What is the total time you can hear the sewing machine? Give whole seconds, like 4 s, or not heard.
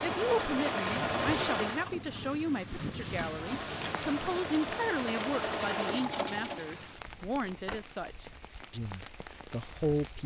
7 s.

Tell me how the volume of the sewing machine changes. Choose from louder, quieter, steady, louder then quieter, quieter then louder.
quieter then louder.